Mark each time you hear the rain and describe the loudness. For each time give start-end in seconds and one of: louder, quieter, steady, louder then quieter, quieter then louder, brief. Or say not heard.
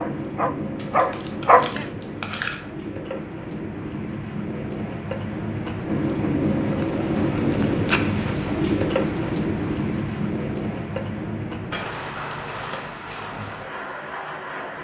0.0-14.7 louder then quieter.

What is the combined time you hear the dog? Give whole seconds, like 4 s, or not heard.
2 s.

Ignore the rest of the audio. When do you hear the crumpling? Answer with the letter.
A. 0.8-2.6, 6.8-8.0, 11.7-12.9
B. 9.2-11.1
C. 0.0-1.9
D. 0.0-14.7
A.